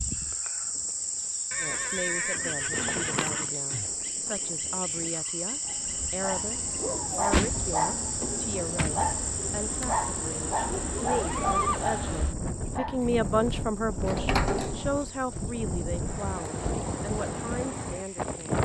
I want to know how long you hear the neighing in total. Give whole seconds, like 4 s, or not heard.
3 s.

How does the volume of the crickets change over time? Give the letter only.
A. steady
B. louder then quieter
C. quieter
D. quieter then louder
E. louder
C.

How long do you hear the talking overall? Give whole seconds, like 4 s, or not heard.
17 s.